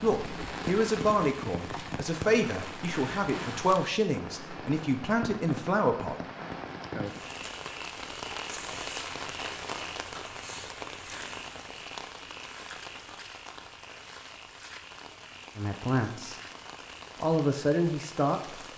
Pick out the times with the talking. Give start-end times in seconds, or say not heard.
0.0-6.2, 15.6-16.4, 17.2-18.6.